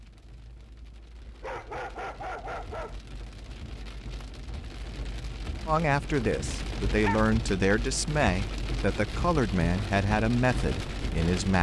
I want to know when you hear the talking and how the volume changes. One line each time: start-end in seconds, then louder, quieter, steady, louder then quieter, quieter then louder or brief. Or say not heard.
5.7-11.5 steady.